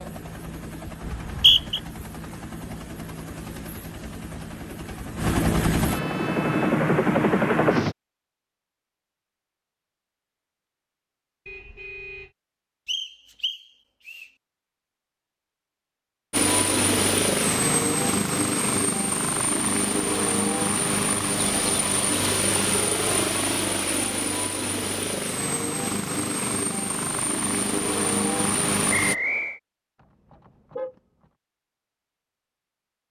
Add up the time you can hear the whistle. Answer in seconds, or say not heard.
3 s.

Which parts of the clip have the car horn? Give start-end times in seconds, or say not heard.
5.8-6.8, 11.4-12.3, 30.0-31.0.